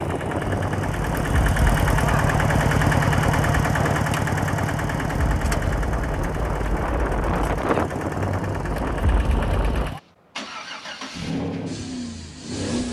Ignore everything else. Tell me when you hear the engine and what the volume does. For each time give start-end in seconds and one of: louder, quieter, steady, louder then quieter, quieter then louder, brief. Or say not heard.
0.0-12.8 quieter.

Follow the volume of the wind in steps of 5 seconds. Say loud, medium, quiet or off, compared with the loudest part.
loud, loud, off.